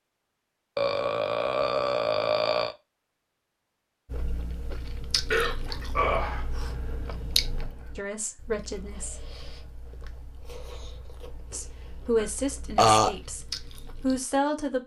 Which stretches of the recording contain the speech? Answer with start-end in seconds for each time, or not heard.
8.0-9.2, 11.5-14.8.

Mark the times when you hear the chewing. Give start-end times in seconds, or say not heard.
4.0-14.2.